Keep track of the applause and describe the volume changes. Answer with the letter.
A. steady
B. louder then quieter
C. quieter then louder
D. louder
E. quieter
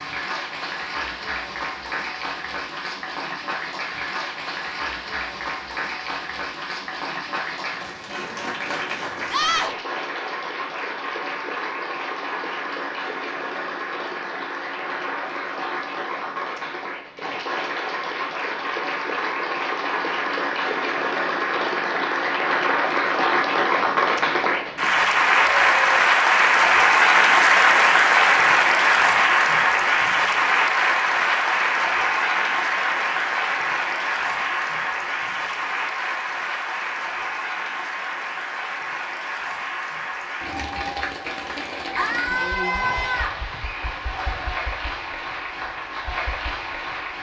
B.